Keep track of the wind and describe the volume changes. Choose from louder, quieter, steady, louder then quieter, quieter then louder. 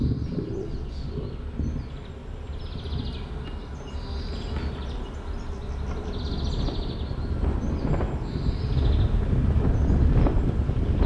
louder.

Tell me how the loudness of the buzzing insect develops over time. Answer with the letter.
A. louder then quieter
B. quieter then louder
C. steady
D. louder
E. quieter
E.